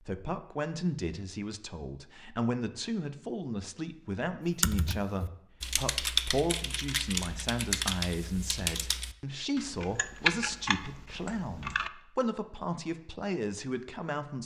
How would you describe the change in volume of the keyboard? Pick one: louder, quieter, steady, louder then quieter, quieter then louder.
quieter then louder.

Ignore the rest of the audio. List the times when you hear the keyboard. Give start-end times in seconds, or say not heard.
4.5-11.9.